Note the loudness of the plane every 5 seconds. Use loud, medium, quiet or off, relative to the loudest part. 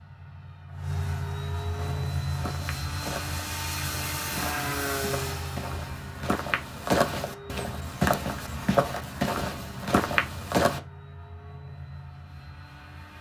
loud, medium, quiet.